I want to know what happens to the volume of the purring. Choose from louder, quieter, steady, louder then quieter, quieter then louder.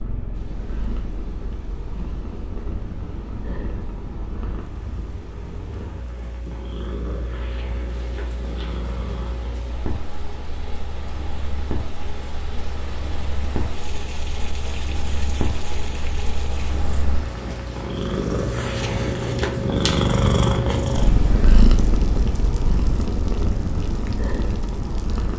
louder.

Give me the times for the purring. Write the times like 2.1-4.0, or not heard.
0.0-25.3.